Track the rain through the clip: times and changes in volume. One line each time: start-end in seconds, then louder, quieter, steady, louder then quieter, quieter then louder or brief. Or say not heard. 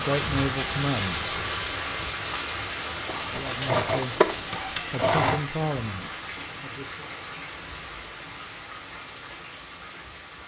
0.0-10.4 quieter.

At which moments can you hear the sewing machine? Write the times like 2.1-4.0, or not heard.
3.0-5.4.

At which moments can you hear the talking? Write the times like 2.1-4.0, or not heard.
0.0-1.4, 3.2-7.2.